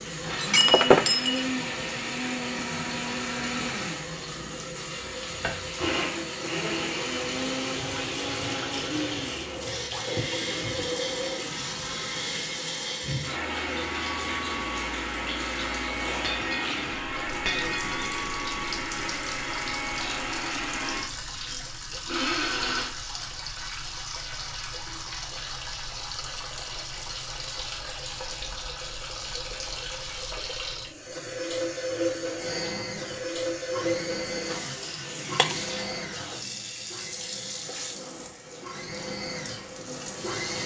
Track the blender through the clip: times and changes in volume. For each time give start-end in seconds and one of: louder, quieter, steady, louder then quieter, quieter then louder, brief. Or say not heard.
0.2-22.9 steady
32.4-40.6 quieter then louder.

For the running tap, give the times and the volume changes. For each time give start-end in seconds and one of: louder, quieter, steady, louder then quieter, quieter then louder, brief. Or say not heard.
0.0-40.6 steady.